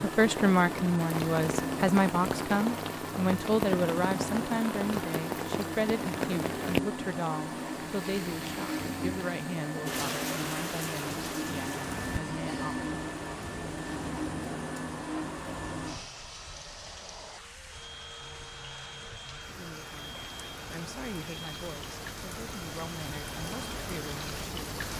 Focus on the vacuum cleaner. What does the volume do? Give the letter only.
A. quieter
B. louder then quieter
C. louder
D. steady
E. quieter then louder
A.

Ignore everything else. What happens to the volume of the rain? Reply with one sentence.
The loudness of the rain goes down, then up.